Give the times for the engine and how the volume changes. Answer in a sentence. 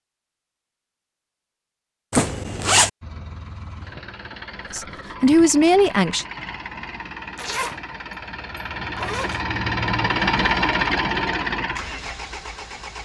You can hear the engine from 3.0 to 13.0 s, getting louder.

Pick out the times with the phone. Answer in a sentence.
The phone can't be heard in this clip.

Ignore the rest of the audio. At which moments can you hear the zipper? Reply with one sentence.
You can hear the zipper from 2.1 to 2.9 s, from 7.3 to 7.8 s and from 8.6 to 9.4 s.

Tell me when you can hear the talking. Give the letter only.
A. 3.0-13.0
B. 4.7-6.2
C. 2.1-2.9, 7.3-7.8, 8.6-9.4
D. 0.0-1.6
B.